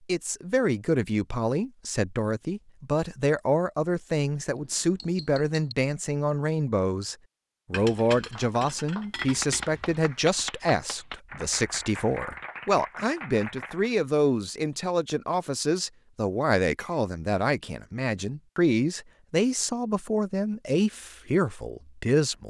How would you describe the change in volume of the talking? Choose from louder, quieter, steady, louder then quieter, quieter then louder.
steady.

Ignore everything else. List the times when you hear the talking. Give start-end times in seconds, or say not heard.
0.1-22.4.